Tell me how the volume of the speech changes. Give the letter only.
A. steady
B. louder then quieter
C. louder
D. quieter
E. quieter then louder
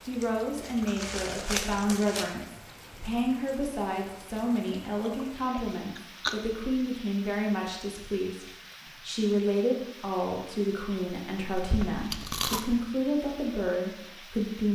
A.